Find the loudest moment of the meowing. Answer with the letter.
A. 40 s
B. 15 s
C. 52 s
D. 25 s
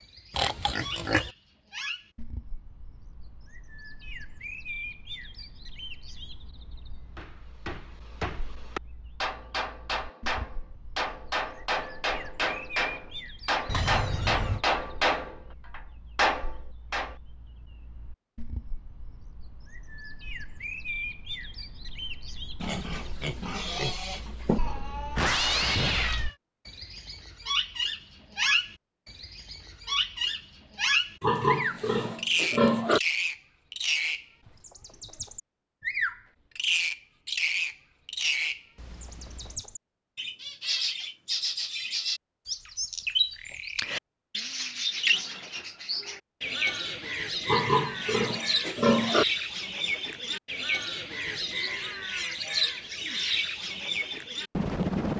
D.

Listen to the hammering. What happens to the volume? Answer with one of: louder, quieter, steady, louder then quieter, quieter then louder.
louder.